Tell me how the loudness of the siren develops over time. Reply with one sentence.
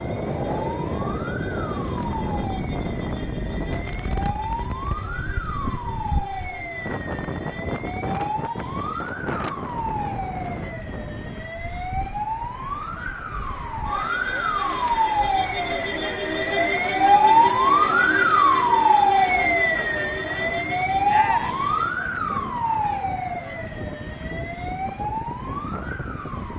The loudness of the siren goes up, then down.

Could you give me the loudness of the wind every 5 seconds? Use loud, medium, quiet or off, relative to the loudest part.
loud, loud, medium, quiet, medium, medium.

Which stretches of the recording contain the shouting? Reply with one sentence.
You can hear the shouting from 21.1 to 21.6 s.